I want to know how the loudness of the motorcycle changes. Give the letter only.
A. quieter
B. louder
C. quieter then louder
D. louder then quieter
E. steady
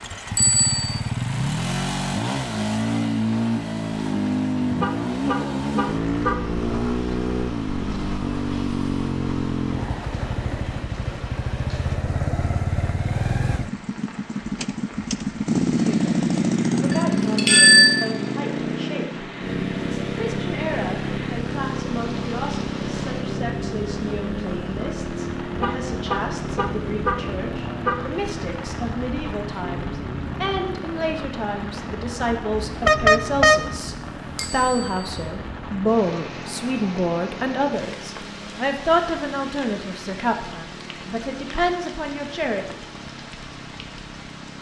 A.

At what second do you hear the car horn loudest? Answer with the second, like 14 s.
33 s.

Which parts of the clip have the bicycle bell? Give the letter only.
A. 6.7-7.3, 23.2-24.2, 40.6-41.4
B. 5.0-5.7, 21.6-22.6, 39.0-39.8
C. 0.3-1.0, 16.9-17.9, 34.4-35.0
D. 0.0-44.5
C.